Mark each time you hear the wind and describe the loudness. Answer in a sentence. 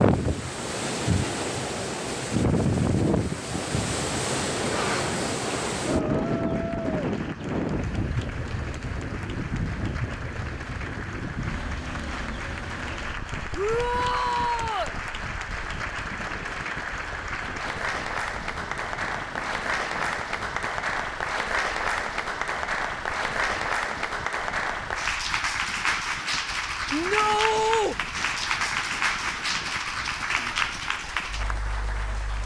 You can hear the wind from 0.0 to 32.4 s, getting quieter.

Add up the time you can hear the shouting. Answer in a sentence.
You can hear the shouting for 3 seconds altogether.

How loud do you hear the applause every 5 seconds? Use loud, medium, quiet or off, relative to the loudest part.
quiet, quiet, medium, loud, loud, loud, loud.